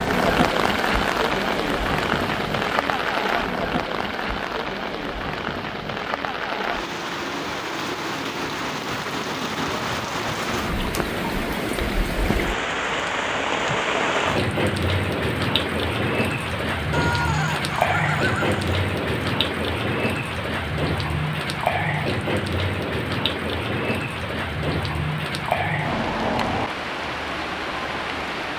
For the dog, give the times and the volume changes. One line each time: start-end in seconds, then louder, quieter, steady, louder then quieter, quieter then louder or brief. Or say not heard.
not heard.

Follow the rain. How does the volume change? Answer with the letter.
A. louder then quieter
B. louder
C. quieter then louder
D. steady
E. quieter
D.